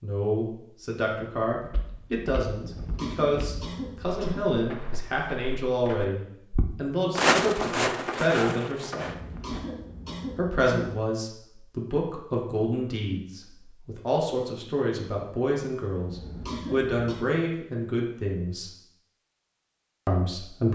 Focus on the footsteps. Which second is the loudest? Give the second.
7 s.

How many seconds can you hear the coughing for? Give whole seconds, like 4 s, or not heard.
5 s.